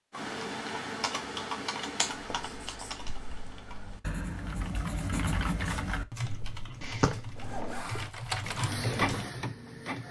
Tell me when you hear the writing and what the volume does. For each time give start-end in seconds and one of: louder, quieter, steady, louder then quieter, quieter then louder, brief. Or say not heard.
2.1-8.8 louder then quieter.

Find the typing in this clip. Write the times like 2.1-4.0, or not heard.
0.1-9.3.